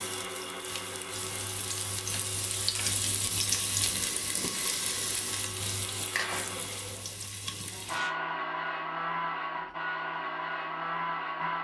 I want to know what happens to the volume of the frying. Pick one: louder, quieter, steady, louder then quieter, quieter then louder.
louder then quieter.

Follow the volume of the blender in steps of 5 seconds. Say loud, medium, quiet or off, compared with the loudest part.
medium, loud, loud.